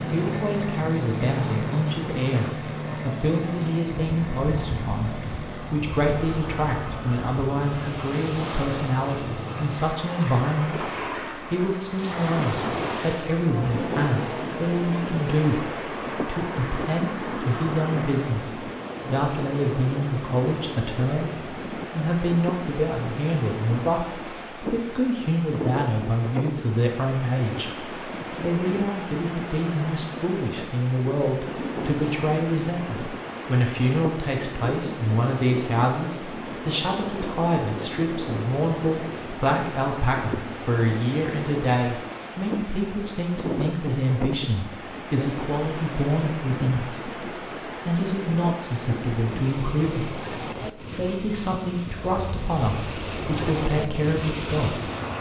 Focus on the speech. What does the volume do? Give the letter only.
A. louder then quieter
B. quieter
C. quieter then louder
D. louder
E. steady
E.